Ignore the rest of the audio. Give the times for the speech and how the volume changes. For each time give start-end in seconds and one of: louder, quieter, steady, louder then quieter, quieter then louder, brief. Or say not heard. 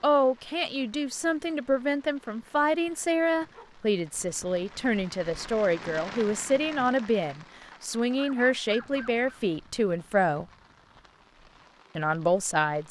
0.0-10.4 steady
11.9-12.8 brief.